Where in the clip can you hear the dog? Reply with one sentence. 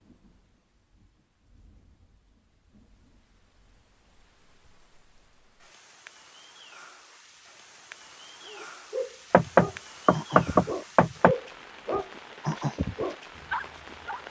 The dog can be heard from 8.4 to 14.2 s.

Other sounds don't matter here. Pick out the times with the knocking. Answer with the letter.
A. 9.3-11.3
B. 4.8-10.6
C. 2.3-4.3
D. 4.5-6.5
A.